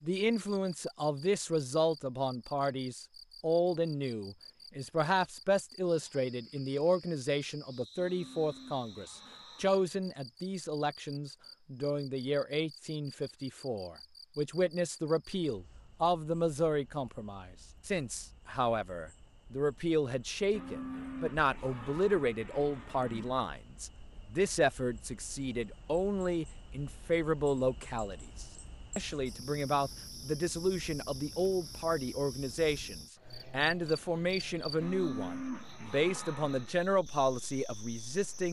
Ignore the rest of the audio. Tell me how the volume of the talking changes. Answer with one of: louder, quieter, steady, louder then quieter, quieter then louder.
steady.